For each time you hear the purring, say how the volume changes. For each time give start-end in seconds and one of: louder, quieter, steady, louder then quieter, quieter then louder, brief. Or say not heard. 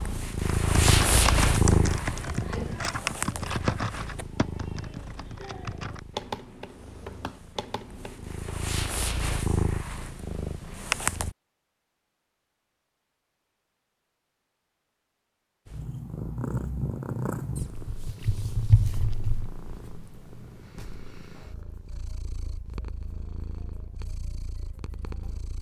0.0-11.3 quieter then louder
15.7-25.5 quieter.